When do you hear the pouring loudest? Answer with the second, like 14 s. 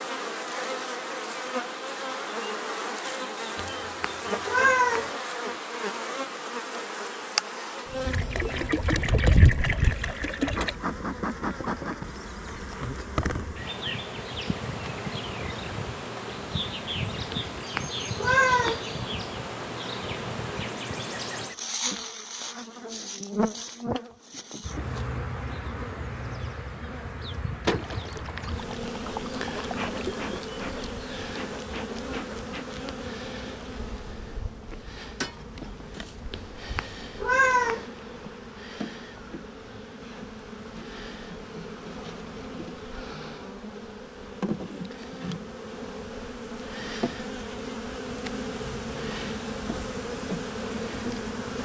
9 s.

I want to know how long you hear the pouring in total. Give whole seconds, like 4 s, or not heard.
5 s.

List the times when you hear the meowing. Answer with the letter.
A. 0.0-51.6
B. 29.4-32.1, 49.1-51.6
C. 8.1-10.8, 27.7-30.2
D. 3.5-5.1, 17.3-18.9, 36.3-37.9
D.